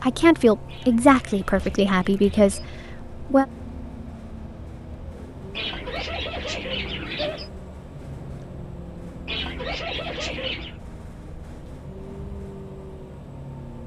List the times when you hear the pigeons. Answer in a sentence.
The pigeons can be heard from 0.7 to 2.8 s, from 5.5 to 7.5 s and from 9.2 to 10.8 s.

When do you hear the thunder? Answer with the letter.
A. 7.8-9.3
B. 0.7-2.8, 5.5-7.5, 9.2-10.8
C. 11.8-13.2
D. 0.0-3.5
A.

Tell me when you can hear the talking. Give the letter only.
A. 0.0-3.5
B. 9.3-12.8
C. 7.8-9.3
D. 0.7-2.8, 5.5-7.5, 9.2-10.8
A.